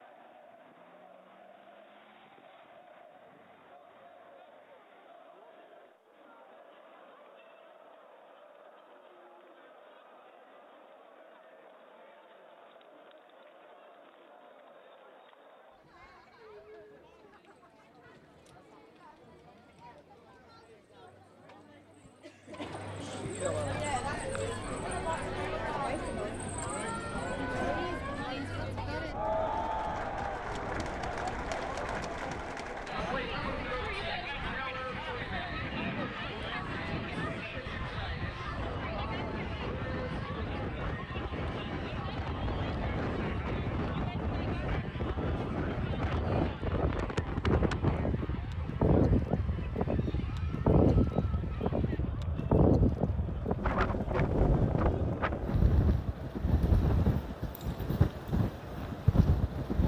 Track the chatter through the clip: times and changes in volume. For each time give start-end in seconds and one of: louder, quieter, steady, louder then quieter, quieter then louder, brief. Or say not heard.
0.0-59.8 louder then quieter.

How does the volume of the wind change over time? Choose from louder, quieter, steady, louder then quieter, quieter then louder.
louder.